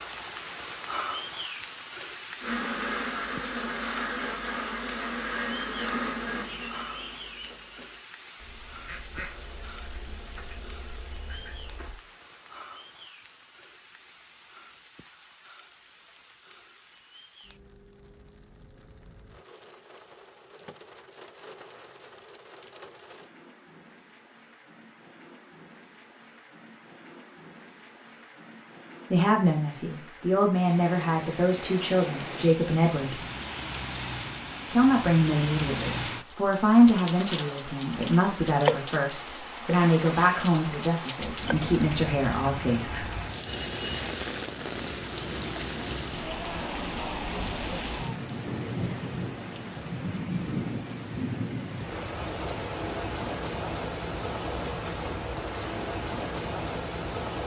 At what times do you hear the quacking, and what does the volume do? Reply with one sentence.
You can hear the quacking from 2.4 to 12.0 s, getting quieter.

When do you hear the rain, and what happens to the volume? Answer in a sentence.
The rain can be heard from 0.0 to 57.4 s, getting quieter then louder.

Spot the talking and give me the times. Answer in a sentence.
You can hear the talking from 29.1 to 33.2 s and from 34.7 to 43.0 s.